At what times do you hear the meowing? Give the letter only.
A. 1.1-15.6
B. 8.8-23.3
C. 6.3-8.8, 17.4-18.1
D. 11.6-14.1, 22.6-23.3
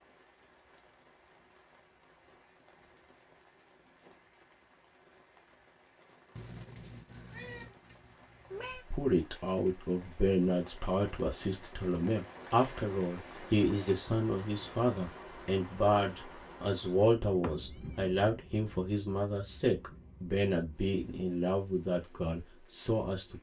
C.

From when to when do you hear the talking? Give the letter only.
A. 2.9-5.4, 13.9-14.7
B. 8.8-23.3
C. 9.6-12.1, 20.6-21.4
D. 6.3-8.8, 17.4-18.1
B.